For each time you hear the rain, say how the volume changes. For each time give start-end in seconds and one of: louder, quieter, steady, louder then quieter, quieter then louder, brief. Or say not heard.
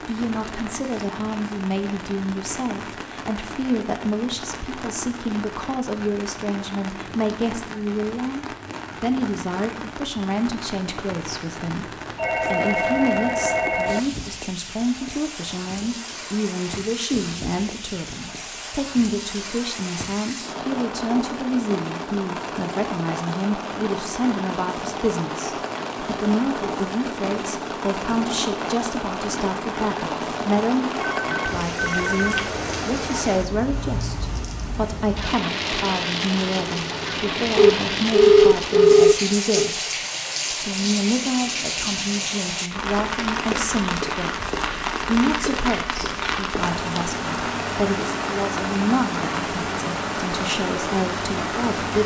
0.0-52.0 louder.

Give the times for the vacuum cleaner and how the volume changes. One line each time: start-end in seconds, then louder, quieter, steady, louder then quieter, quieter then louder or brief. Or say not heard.
not heard.